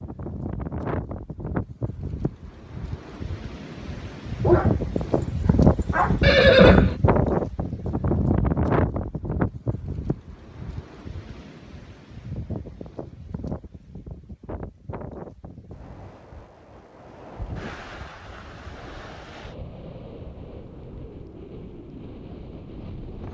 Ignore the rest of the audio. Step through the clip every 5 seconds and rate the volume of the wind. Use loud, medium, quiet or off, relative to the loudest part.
medium, loud, quiet, quiet, quiet.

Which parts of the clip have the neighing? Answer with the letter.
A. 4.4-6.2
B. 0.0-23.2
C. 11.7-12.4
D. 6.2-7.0
D.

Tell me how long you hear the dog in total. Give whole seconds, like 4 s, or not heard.
2 s.